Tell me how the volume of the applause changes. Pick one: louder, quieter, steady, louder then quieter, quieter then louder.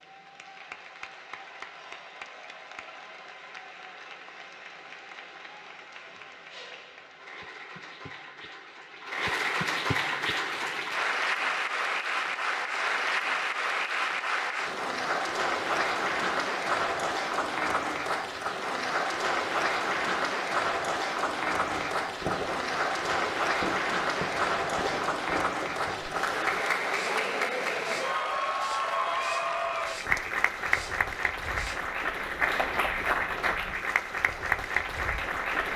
louder.